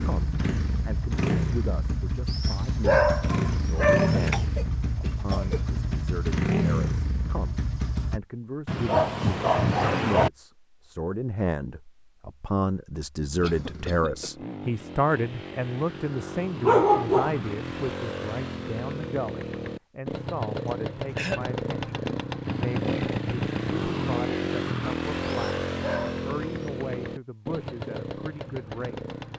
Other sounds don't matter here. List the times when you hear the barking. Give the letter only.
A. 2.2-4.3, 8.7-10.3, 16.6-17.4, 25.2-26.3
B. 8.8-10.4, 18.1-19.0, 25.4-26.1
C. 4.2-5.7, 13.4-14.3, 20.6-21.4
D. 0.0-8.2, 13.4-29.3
A.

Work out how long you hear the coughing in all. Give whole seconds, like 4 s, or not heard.
3 s.